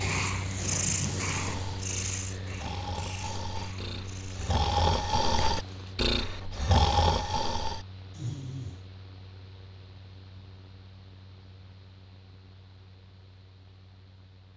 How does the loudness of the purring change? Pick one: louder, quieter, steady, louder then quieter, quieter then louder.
quieter then louder.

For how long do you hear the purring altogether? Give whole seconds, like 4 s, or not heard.
6 s.